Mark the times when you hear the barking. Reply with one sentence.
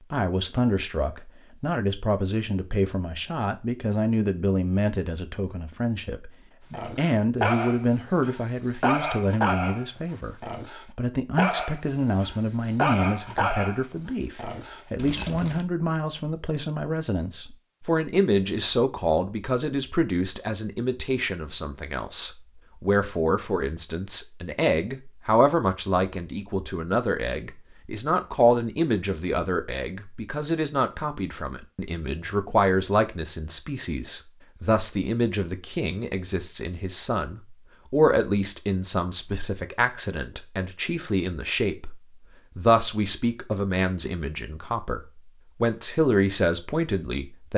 You can hear the barking from 6.7 to 15.7 s.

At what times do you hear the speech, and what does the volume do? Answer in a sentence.
You can hear the speech from 0.1 to 10.3 s, at a steady volume; and from 10.9 to 47.5 s, at a steady volume.